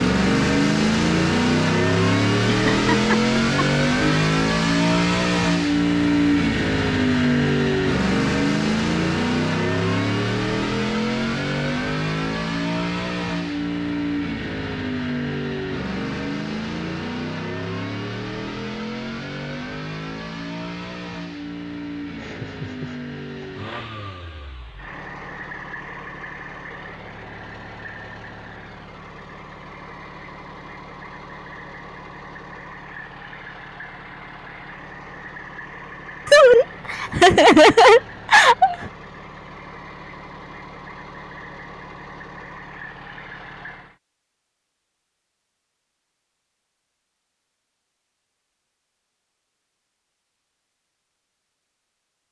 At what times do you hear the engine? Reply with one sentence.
The engine can be heard from 0.0 to 44.0 s.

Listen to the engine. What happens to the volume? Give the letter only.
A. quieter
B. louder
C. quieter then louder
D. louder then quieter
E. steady
A.